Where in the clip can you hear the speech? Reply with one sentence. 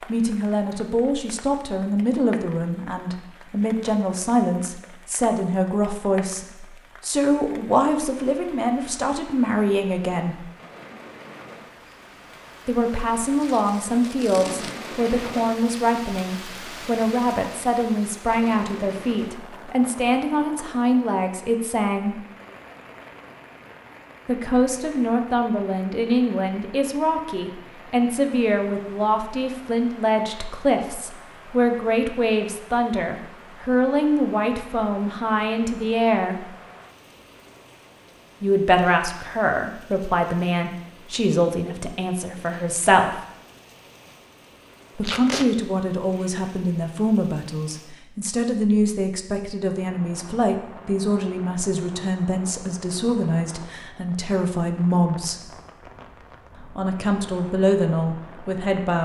The speech can be heard from 0.1 to 10.4 s, from 12.7 to 22.1 s, from 24.2 to 36.5 s, from 38.4 to 43.1 s, from 45.0 to 55.5 s and from 56.8 to 59.0 s.